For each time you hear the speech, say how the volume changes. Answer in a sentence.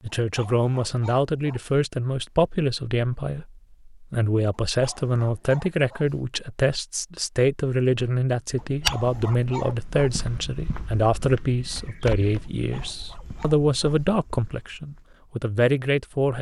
The speech can be heard from 0.0 to 16.3 s, at a steady volume.